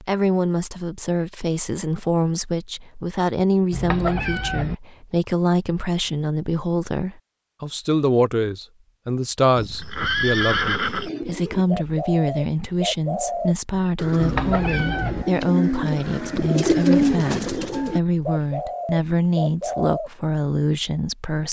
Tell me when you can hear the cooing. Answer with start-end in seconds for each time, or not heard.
10.8-20.1.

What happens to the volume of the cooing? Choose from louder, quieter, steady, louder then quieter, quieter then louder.
louder then quieter.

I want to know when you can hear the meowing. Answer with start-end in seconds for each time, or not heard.
3.7-4.8, 14.2-15.2.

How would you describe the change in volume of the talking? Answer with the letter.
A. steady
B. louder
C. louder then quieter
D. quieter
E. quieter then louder
A.